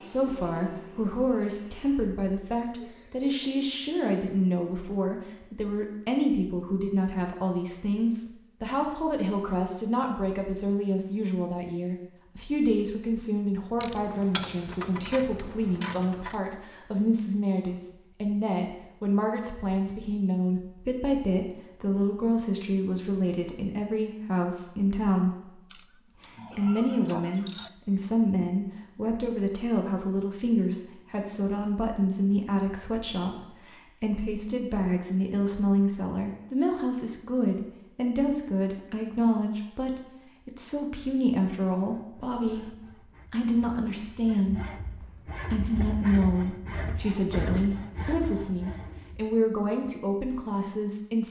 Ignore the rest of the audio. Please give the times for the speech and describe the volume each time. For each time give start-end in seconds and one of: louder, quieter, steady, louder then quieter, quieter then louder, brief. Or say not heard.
0.0-51.2 steady.